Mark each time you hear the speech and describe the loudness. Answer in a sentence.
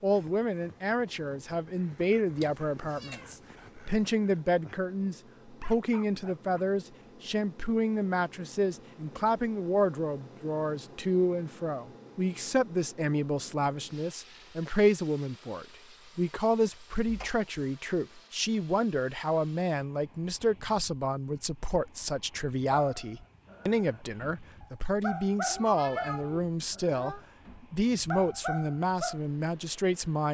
You can hear the speech from 0.0 to 30.2 s, at a steady volume.